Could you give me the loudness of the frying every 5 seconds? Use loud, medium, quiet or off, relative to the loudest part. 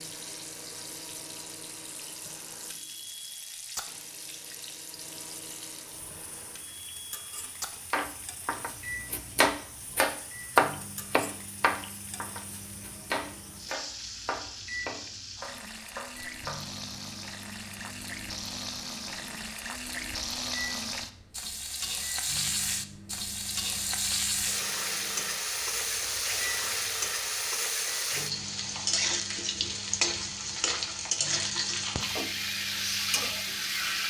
quiet, quiet, quiet, medium, loud, loud, loud.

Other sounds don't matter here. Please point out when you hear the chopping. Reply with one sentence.
You can hear the chopping from 7.9 to 16.6 s.